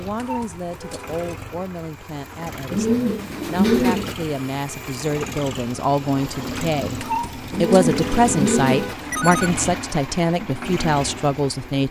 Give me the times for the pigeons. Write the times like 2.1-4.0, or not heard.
2.7-4.2, 7.5-8.9.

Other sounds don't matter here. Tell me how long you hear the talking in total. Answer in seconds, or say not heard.
12 s.